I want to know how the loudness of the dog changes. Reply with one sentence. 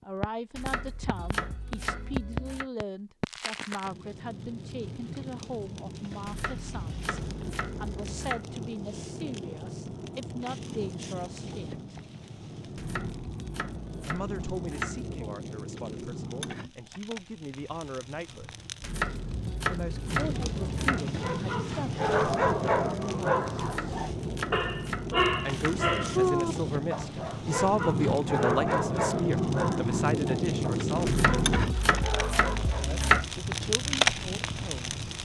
The volume of the dog goes down.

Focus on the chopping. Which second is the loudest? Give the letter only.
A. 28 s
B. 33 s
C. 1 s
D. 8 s
B.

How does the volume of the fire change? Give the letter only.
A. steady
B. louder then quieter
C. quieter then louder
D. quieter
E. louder
E.